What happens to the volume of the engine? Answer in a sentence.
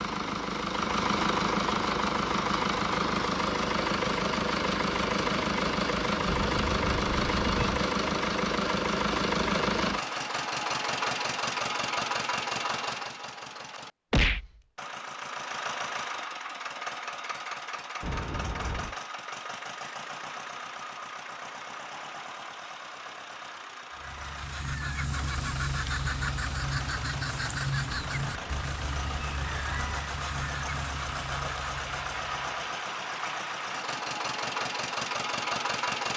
The volume of the engine goes down, then up.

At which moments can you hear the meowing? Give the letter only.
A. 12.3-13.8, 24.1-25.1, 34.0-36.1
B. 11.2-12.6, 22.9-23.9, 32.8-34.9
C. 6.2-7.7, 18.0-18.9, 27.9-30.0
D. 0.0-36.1
C.